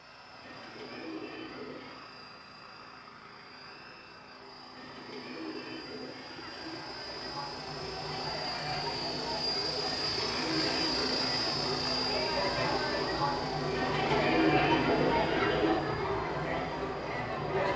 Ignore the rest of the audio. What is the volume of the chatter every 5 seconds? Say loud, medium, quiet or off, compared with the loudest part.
off, medium, loud, loud.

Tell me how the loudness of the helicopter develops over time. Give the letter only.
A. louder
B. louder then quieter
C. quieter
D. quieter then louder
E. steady
B.